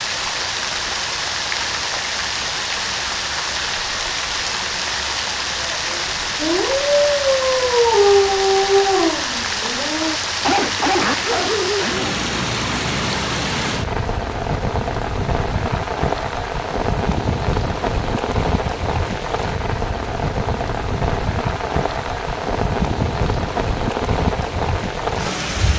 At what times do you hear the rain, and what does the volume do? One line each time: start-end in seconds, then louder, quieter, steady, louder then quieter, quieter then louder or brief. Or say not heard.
0.0-25.7 steady.